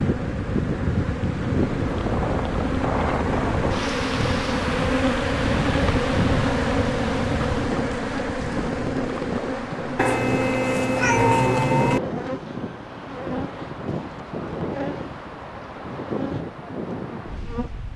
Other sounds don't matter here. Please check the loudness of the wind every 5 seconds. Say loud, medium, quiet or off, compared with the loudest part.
loud, loud, medium, medium.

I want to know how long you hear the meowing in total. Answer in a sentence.
The meowing can be heard for 2 seconds in total.